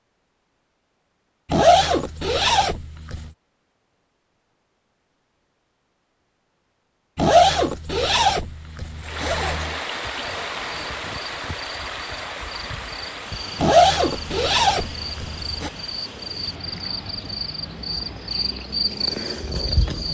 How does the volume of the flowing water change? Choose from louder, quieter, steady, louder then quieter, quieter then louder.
quieter.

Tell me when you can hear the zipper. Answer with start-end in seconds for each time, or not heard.
1.5-3.3, 7.2-9.8, 13.6-15.7.